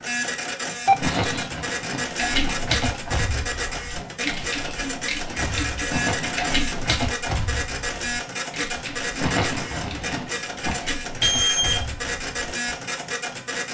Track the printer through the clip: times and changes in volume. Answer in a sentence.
You can hear the printer from 0.0 to 13.6 s, at a steady volume.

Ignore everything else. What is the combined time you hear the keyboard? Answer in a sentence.
The keyboard can be heard for 11 seconds in total.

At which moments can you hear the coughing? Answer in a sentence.
You can hear the coughing from 1.0 to 2.5 s, from 5.8 to 6.8 s and from 9.2 to 10.8 s.